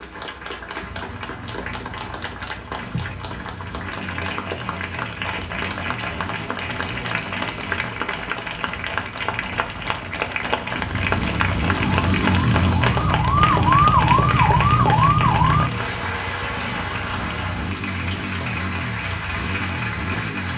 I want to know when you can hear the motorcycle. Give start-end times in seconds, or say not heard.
0.6-20.5.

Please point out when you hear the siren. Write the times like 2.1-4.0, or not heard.
11.8-15.7.